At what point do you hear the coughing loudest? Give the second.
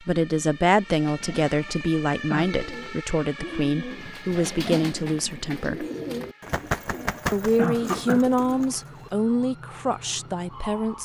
8 s.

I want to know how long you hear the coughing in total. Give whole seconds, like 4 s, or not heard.
2 s.